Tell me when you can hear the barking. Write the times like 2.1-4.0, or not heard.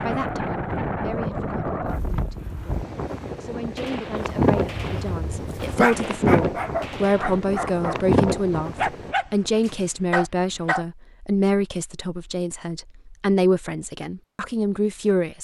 4.2-10.8.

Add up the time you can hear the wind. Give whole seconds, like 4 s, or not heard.
9 s.